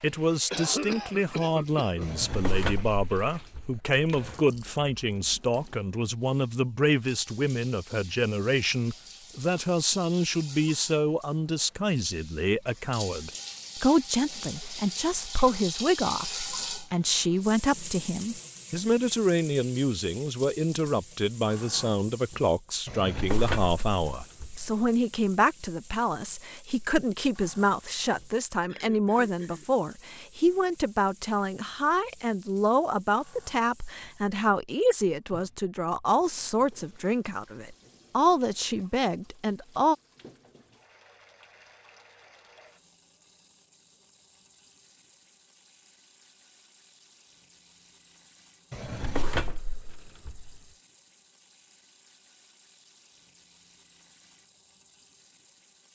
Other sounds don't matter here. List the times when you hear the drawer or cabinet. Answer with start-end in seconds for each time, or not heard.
2.0-4.4, 22.9-24.8, 48.7-50.6.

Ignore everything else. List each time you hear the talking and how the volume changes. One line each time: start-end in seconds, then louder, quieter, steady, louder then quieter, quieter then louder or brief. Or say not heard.
0.0-40.0 steady.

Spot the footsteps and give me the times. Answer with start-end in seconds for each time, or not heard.
not heard.